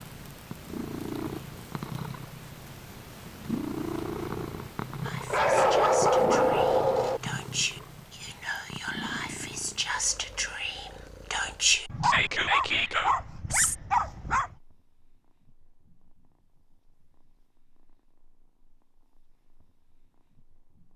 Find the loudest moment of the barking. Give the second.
6 s.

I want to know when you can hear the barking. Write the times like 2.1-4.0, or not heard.
5.3-7.2, 11.8-14.6.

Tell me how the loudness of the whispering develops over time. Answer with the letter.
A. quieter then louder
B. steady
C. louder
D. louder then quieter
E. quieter
C.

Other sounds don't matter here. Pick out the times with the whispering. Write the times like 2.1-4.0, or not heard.
5.0-13.8.